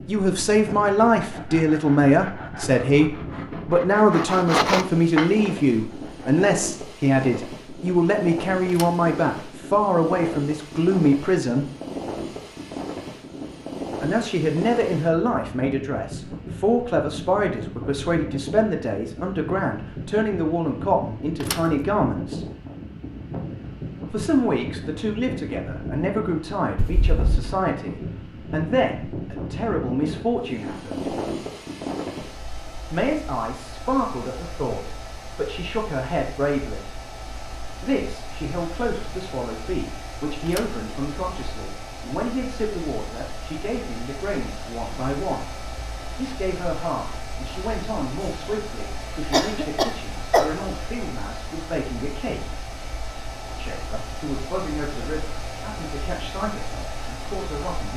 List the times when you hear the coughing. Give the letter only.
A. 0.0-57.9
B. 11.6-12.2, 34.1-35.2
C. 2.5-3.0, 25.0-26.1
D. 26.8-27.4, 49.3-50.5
D.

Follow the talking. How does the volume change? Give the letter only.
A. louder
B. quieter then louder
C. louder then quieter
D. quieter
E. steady
D.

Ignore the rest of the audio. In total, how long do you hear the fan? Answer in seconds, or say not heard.
58 s.